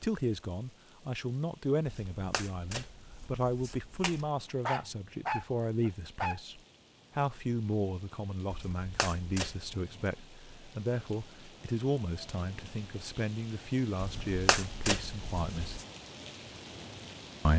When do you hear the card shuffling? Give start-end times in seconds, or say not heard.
1.9-4.3, 8.5-9.7, 14.0-15.8.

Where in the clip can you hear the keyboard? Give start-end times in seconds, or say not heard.
not heard.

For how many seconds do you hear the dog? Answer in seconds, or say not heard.
2 s.